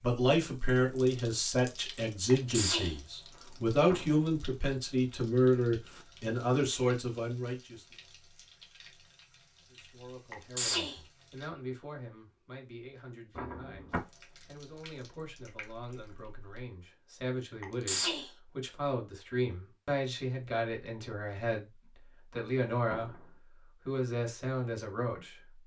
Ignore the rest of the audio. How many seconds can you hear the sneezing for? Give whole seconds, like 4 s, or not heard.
2 s.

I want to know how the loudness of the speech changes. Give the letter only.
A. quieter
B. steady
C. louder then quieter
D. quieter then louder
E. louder
D.